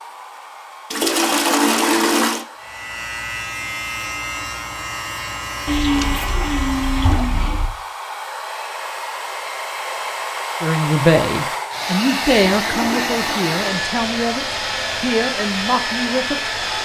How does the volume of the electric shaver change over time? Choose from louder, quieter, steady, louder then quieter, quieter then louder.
steady.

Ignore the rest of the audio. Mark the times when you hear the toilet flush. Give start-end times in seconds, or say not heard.
0.9-2.5, 5.7-7.7, 12.4-13.8.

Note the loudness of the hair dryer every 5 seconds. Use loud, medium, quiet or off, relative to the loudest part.
quiet, medium, loud, loud.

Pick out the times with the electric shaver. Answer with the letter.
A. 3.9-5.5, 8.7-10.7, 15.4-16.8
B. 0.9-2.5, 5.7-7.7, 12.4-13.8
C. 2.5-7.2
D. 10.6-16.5
C.